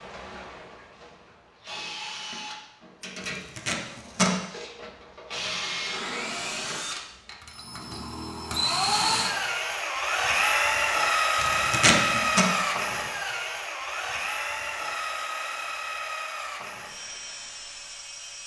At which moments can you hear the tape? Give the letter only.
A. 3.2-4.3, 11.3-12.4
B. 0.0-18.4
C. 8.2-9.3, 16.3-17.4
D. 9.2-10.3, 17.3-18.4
A.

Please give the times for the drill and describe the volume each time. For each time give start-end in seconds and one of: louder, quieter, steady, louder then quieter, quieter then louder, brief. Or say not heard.
0.0-18.4 louder then quieter.